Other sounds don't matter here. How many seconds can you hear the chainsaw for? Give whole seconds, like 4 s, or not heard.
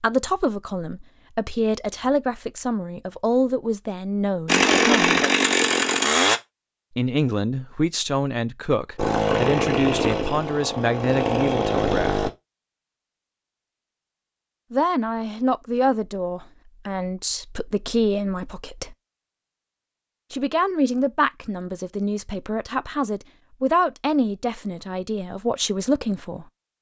5 s.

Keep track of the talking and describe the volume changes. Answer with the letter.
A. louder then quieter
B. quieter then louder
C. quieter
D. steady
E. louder
D.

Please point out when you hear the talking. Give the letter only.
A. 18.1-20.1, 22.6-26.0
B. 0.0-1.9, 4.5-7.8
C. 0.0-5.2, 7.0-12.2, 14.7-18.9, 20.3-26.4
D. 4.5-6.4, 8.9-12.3
C.